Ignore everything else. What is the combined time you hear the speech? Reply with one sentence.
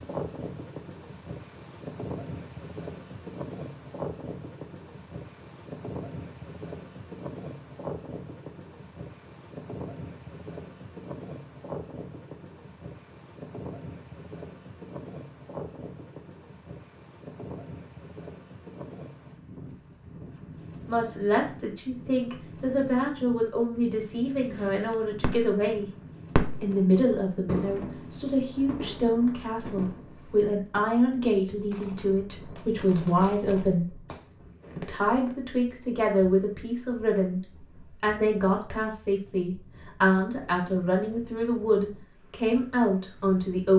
You can hear the speech for 21 seconds altogether.